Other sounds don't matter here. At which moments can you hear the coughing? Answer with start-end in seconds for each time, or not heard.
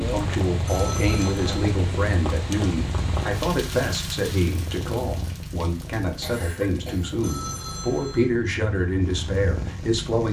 5.8-7.2.